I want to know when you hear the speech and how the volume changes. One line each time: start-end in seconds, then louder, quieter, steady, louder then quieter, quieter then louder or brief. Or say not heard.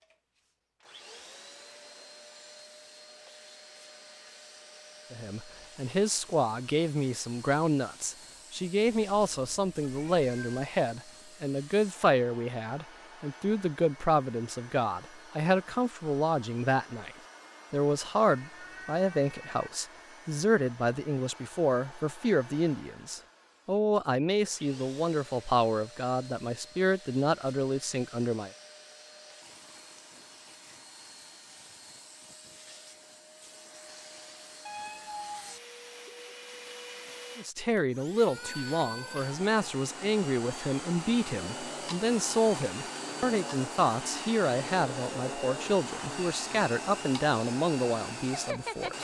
5.1-28.5 steady
37.4-48.9 steady.